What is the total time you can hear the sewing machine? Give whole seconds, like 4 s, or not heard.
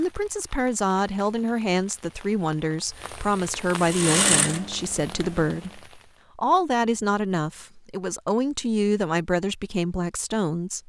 2 s.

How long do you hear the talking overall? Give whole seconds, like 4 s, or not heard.
11 s.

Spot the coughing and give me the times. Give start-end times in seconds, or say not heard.
not heard.